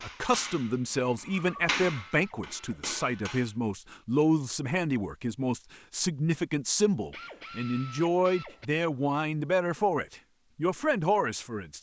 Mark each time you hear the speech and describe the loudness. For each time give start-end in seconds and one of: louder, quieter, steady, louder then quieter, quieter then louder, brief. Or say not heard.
0.0-11.7 steady.